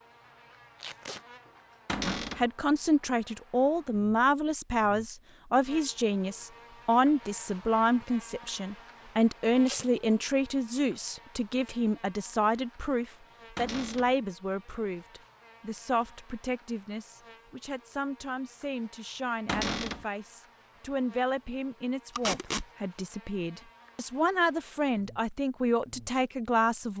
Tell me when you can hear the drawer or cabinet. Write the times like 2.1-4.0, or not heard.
1.9-2.5, 13.6-14.1, 19.4-20.1.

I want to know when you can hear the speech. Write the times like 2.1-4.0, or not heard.
2.0-26.9.